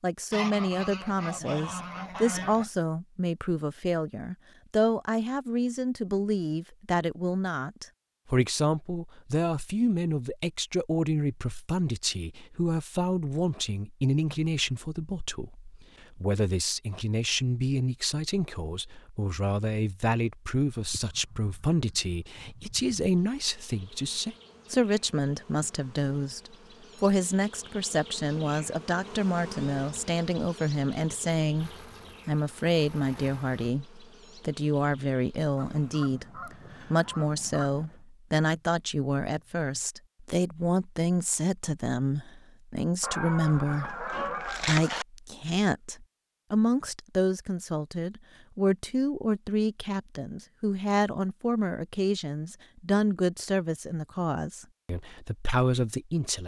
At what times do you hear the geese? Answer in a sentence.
You can hear the geese from 0.3 to 2.6 s, from 20.8 to 22.9 s, from 35.5 to 38.0 s and from 43.0 to 45.0 s.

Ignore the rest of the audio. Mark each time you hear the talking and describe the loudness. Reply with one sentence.
The talking can be heard from 0.0 to 56.4 s, at a steady volume.